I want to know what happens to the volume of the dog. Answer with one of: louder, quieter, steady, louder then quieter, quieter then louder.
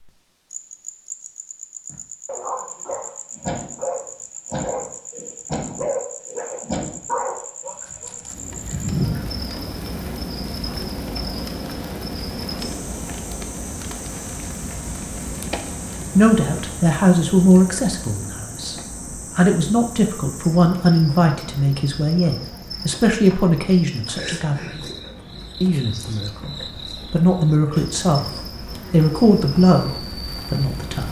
steady.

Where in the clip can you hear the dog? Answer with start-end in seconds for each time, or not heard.
1.9-9.4.